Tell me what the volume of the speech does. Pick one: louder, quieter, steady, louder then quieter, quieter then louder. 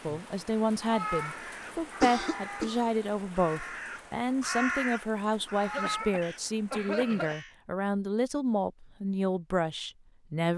steady.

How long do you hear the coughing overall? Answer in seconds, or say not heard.
3 s.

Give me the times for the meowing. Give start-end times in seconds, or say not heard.
0.8-2.6, 5.6-6.2.